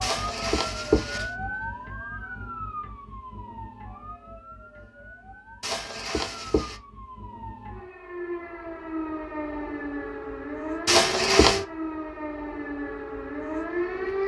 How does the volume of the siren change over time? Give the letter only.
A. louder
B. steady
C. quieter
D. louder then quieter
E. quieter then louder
E.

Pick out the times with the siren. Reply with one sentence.
The siren can be heard from 0.0 to 14.2 s.